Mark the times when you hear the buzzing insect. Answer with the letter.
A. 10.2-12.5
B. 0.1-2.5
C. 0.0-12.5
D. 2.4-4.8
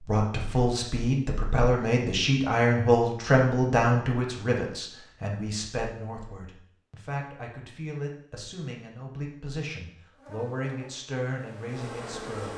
A.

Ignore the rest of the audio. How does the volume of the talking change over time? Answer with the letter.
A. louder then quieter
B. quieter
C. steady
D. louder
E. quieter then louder
B.